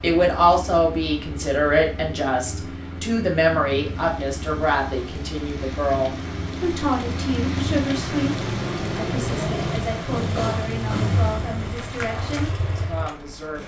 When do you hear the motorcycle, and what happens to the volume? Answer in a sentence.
You can hear the motorcycle from 0.0 to 13.6 s, getting louder.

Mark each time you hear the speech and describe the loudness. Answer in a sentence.
You can hear the speech from 0.0 to 13.6 s, getting quieter.